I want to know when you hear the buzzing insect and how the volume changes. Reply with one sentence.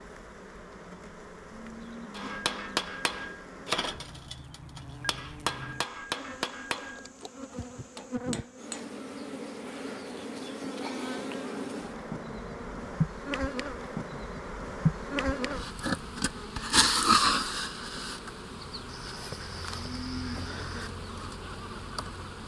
You can hear the buzzing insect from 0.0 to 22.4 s, getting louder then quieter.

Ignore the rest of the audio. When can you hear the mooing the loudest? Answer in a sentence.
The loudest moment of the mooing is at 20 seconds.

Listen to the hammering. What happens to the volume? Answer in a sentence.
The loudness of the hammering goes down.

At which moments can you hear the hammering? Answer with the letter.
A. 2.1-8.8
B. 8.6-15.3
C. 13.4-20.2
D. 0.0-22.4
A.